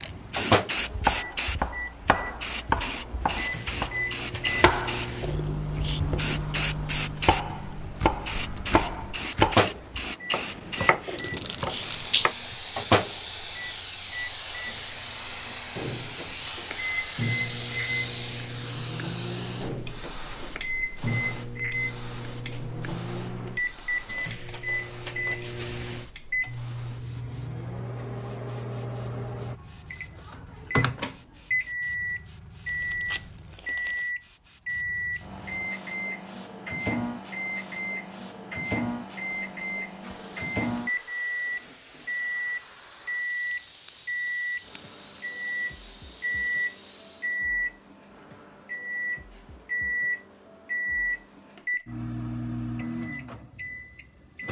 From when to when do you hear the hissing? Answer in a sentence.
You can hear the hissing from 0.0 to 47.5 s.